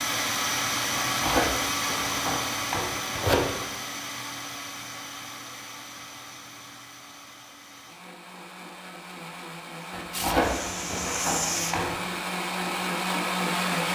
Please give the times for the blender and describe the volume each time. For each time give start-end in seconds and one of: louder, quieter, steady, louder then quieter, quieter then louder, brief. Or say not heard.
0.0-13.8 quieter then louder.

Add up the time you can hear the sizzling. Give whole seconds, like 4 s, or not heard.
2 s.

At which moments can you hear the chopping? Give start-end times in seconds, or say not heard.
1.1-3.6, 9.9-12.1.